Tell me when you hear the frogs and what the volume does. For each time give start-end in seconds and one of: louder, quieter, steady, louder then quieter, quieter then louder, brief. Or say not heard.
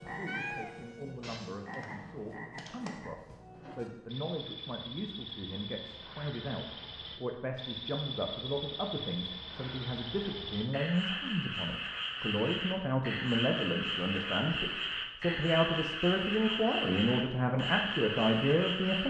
0.0-19.0 louder.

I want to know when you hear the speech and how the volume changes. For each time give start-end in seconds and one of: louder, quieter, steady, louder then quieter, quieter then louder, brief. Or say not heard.
0.1-19.0 louder.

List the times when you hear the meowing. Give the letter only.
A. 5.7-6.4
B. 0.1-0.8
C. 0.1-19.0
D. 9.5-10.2
B.